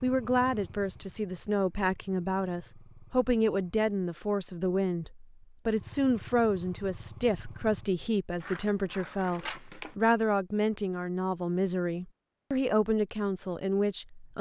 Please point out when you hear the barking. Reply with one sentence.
The barking can't be heard in this clip.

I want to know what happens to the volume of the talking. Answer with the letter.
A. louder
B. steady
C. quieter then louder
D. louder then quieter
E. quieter
B.